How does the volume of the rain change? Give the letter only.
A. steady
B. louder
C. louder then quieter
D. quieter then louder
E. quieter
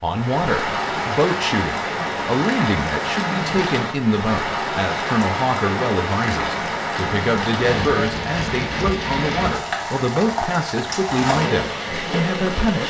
A.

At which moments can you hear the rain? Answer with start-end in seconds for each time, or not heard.
0.0-12.8.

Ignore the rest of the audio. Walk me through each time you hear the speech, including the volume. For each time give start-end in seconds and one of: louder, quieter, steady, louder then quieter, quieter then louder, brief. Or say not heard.
0.0-12.8 steady.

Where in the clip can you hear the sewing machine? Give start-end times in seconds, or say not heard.
not heard.